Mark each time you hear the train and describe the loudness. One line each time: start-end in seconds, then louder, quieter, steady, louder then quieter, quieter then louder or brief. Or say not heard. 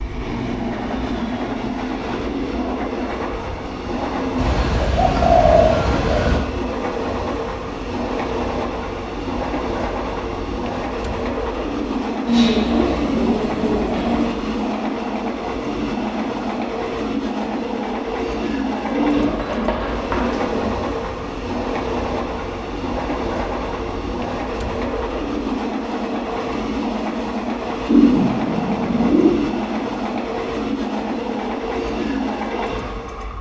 0.0-33.3 steady.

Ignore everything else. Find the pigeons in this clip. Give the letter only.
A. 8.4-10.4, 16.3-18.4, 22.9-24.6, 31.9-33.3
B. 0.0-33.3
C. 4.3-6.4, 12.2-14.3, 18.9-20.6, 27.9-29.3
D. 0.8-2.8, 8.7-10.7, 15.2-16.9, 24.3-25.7
C.